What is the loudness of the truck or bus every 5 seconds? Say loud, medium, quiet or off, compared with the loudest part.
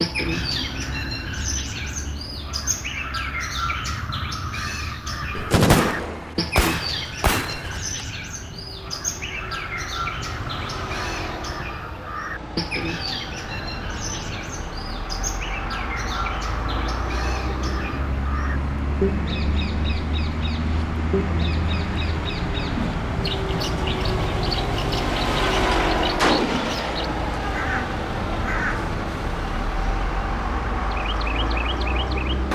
quiet, quiet, medium, medium, loud, loud, loud.